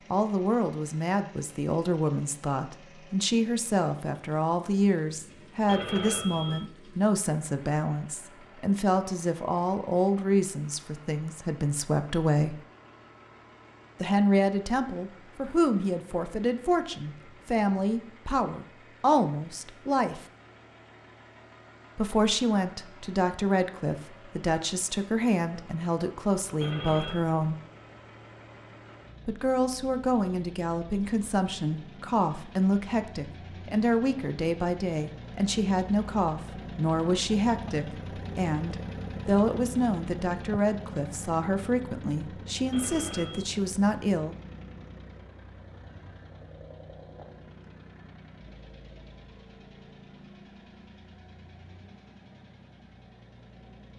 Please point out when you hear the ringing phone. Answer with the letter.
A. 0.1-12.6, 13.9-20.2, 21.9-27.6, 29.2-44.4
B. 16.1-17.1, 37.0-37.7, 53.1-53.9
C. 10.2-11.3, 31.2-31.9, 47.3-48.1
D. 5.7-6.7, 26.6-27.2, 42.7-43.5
D.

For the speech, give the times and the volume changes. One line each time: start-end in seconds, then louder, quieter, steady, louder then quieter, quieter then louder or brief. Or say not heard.
0.1-12.6 steady
13.9-20.2 steady
21.9-27.6 steady
29.2-44.4 steady.